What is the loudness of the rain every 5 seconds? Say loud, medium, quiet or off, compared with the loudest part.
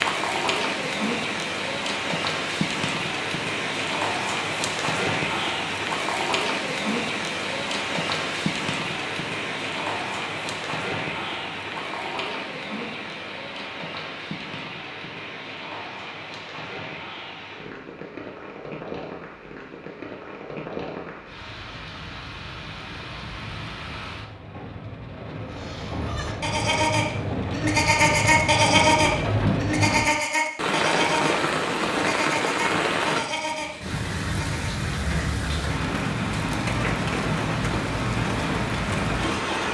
loud, loud, medium, medium, medium, loud, loud, loud.